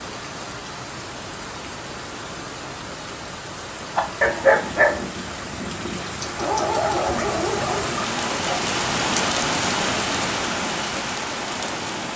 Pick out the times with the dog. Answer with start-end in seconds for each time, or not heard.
4.0-8.6.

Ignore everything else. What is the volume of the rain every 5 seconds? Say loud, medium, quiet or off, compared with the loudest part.
medium, loud, loud.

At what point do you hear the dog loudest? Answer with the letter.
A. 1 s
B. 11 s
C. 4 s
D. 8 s
C.